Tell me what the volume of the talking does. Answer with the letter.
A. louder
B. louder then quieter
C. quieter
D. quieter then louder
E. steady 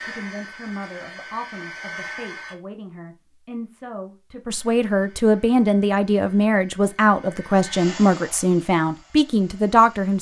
A.